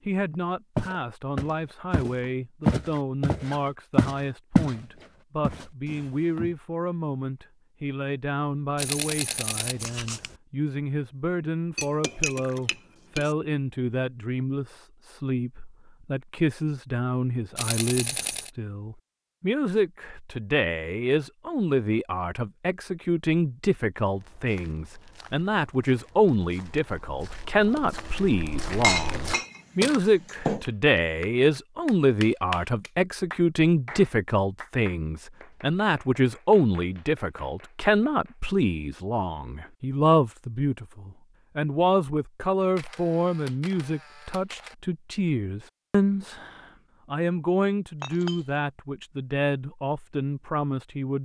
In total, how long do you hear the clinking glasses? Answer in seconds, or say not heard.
4 s.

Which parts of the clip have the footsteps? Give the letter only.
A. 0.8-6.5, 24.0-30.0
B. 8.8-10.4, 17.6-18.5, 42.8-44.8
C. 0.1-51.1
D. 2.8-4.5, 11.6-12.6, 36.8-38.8
A.